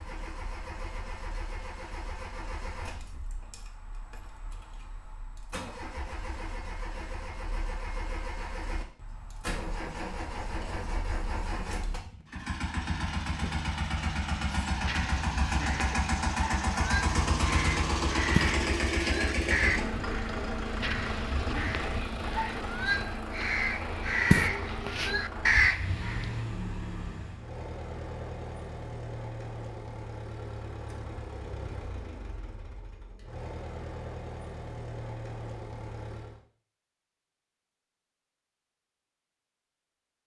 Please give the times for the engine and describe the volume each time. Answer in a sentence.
You can hear the engine from 0.0 to 36.4 s, getting louder then quieter.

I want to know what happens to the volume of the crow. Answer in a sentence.
The volume of the crow goes up.